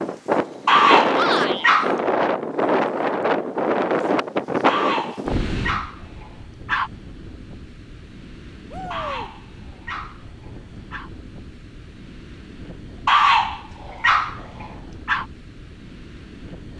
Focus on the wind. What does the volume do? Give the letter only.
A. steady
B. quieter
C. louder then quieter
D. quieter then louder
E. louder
B.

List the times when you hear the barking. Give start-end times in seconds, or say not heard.
0.7-2.0, 4.7-6.9, 8.9-11.1, 13.1-15.2.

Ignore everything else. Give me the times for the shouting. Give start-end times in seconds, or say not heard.
1.1-1.7, 8.7-9.3.